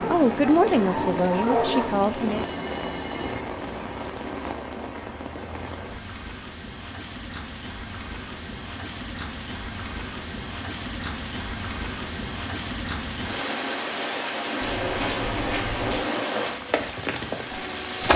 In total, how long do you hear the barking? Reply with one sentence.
The barking can be heard for 2 seconds in total.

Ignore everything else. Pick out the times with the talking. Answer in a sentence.
You can hear the talking from 0.0 to 2.5 s.